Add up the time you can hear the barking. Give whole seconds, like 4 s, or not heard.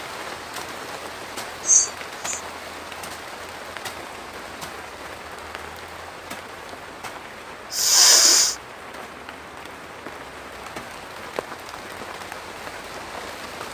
not heard.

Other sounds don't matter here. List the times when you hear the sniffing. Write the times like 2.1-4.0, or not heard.
1.6-2.4, 7.7-8.6.